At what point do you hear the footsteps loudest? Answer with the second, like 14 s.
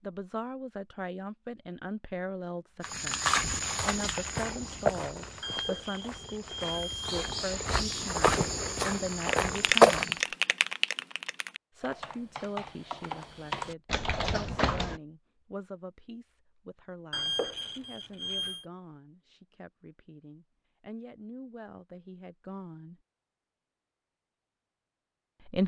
10 s.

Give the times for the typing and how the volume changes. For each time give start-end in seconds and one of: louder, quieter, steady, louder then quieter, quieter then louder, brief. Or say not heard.
9.2-15.0 quieter then louder.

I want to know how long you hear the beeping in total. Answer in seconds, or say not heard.
3 s.